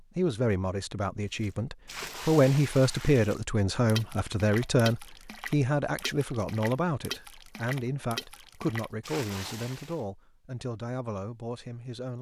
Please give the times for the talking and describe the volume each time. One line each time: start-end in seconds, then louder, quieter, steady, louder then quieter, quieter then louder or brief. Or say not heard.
0.0-12.1 quieter.